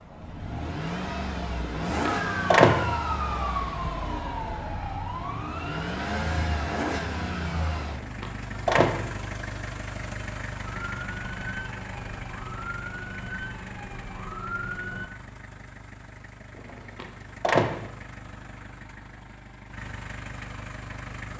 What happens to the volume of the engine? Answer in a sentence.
The volume of the engine goes down.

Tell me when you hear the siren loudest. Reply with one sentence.
The loudest moment of the siren is at 3 seconds.